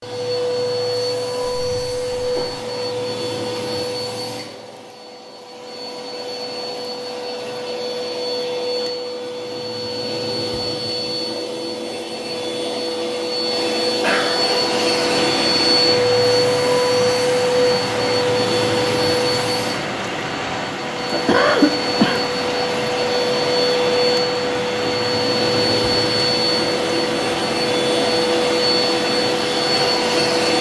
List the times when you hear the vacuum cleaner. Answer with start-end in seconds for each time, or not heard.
0.0-30.5.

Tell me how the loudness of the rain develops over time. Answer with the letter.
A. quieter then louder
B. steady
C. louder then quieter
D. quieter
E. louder
B.